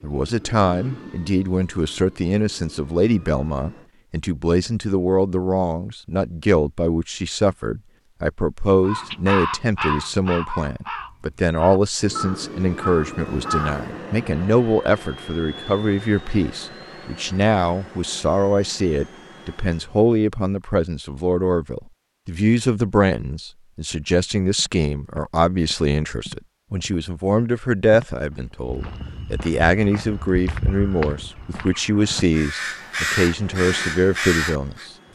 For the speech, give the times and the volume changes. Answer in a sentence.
You can hear the speech from 0.0 to 34.9 s, at a steady volume.